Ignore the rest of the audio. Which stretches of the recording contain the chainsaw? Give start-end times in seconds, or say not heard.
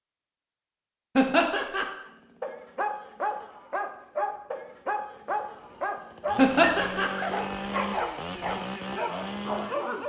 2.0-10.0.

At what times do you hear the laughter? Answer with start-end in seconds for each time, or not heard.
1.1-1.9, 6.3-7.1.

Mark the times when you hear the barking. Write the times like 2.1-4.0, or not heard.
2.4-10.0.